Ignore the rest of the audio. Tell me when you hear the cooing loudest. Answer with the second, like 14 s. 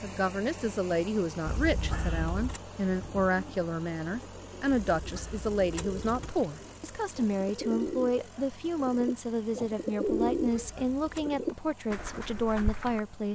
10 s.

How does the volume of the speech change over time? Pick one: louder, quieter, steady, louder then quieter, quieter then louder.
steady.